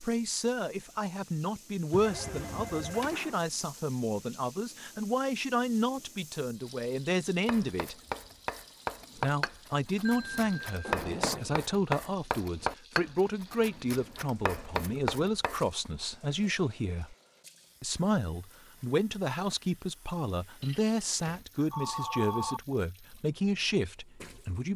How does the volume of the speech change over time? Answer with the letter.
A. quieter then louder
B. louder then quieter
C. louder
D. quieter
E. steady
E.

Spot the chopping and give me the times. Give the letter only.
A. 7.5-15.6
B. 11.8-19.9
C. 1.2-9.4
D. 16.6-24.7
A.